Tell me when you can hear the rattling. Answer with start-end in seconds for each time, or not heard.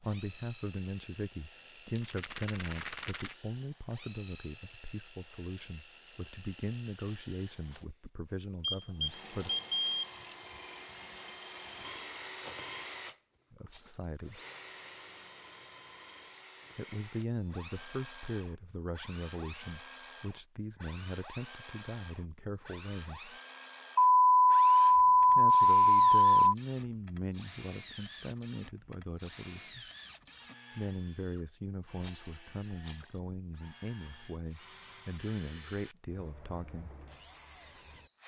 1.9-3.4, 13.7-14.1, 32.0-33.2.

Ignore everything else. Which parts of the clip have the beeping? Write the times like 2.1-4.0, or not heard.
8.6-10.1, 23.9-26.6.